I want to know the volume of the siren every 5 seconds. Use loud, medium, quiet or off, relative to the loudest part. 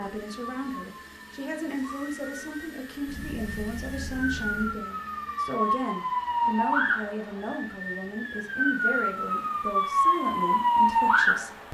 quiet, medium, loud.